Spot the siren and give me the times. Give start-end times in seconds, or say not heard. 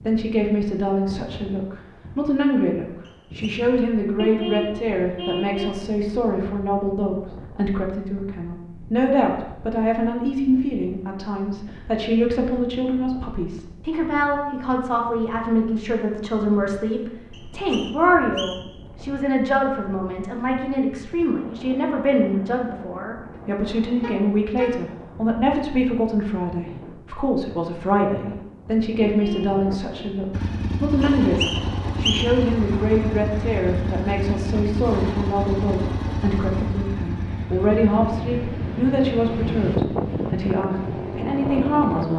not heard.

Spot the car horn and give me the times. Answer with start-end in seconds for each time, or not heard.
4.2-5.8, 24.0-24.8, 29.0-30.1.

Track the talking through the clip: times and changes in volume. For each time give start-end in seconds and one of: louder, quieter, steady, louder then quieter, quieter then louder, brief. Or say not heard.
0.1-42.1 steady.